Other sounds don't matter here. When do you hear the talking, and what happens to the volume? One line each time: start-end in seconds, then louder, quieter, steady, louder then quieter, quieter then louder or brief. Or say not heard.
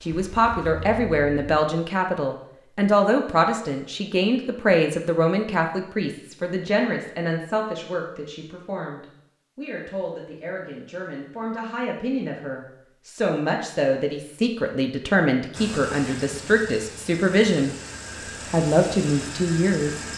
0.0-17.8 quieter then louder
18.5-20.0 brief.